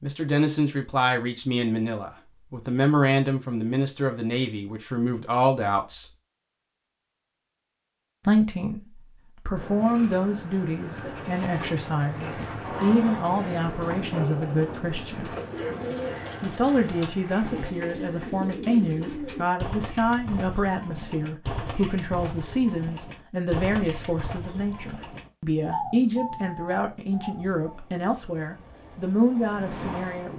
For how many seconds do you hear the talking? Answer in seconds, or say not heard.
27 s.